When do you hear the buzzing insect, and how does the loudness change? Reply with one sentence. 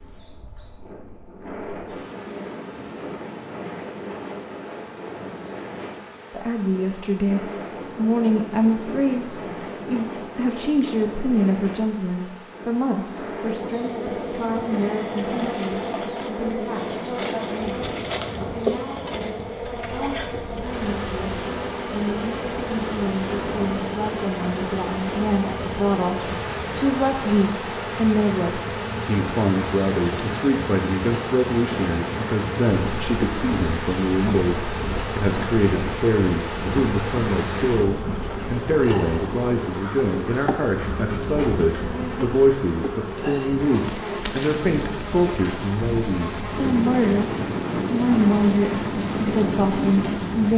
You can hear the buzzing insect from 0.0 to 50.5 s, getting louder.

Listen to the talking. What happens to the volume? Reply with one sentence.
The loudness of the talking goes down, then up.